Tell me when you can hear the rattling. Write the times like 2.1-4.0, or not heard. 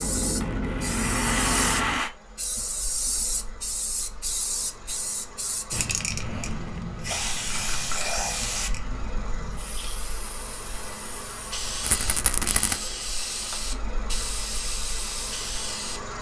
0.4-2.1, 7.7-8.2, 11.8-12.8.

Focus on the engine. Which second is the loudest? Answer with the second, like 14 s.
1 s.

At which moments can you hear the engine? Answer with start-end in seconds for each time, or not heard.
0.0-16.1.